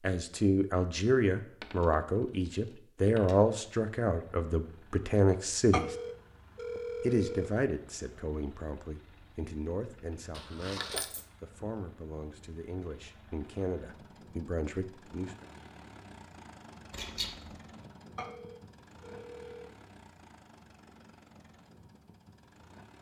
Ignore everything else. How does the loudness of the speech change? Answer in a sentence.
The loudness of the speech goes down.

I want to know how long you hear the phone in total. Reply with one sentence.
You can hear the phone for 3 seconds altogether.